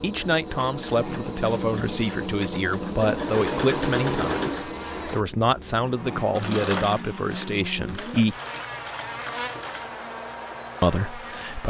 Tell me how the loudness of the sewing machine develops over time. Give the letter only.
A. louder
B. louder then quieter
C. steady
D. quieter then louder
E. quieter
B.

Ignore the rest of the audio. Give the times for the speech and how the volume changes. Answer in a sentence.
You can hear the speech from 0.0 to 8.3 s, at a steady volume; and briefly from 10.8 to 11.6 s.